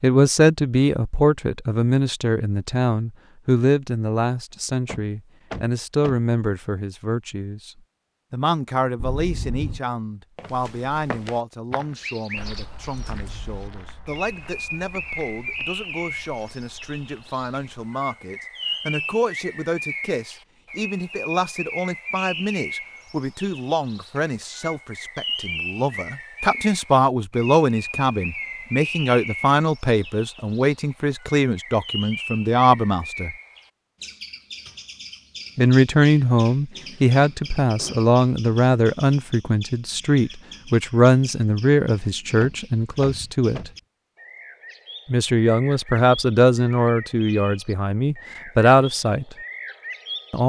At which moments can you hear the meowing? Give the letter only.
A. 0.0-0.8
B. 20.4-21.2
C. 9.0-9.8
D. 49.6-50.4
C.